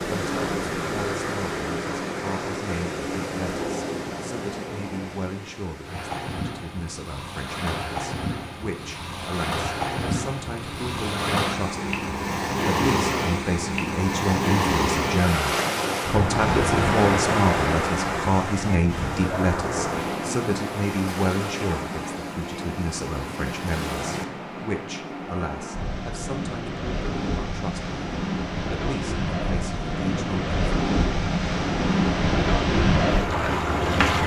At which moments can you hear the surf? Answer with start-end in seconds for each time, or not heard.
0.0-34.2.